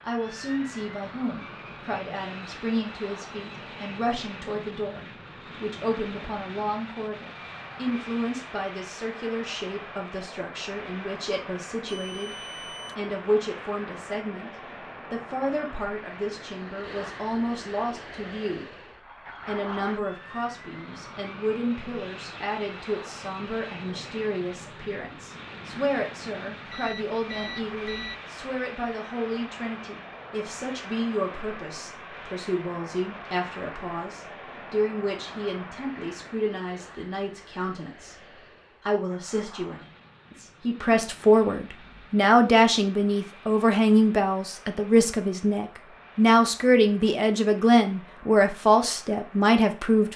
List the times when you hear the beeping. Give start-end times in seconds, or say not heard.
11.8-12.9, 26.6-28.2.